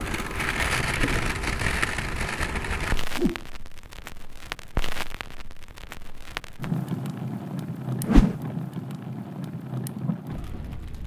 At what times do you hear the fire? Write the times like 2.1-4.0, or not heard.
0.0-11.0.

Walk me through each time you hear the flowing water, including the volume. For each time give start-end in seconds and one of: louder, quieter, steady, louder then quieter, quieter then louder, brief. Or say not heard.
not heard.